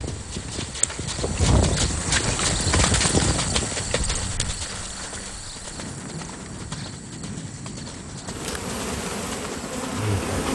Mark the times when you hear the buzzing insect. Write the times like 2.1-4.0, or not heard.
8.2-10.4.